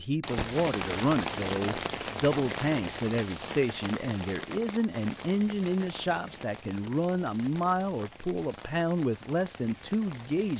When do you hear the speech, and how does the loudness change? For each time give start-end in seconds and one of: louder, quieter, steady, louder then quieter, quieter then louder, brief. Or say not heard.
0.0-10.5 steady.